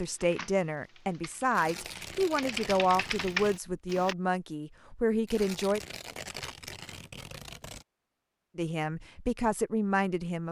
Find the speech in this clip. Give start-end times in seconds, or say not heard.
0.0-5.8, 8.6-10.4.